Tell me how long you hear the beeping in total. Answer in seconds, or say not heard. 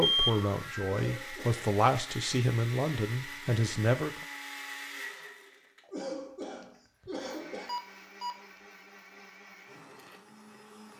2 s.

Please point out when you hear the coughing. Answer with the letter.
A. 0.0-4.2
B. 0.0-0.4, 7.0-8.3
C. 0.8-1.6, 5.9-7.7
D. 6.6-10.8
C.